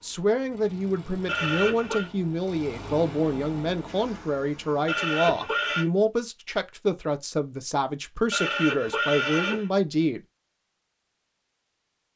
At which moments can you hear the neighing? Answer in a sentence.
The neighing can be heard from 1.2 to 2.1 s, from 4.8 to 5.8 s and from 8.3 to 9.7 s.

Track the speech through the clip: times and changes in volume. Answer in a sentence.
The speech can be heard from 0.0 to 10.2 s, at a steady volume.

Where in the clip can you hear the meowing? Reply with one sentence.
The meowing can't be heard in this clip.